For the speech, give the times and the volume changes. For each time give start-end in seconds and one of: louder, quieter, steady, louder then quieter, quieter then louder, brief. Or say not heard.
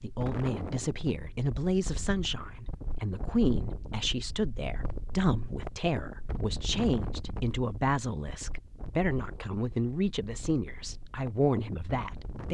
0.0-12.4 steady.